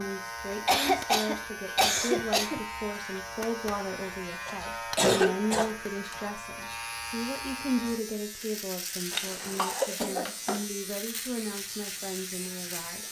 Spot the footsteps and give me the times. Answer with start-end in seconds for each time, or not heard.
not heard.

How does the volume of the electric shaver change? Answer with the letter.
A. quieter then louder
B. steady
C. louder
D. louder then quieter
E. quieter
B.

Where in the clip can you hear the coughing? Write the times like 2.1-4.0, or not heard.
0.7-2.6, 4.5-6.2, 9.1-10.7.